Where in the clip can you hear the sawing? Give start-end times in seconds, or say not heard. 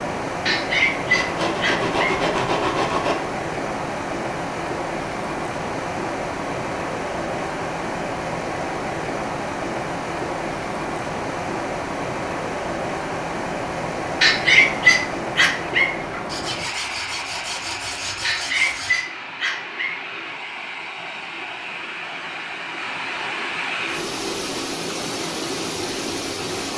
1.1-3.1, 16.2-19.1.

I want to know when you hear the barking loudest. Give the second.
15 s.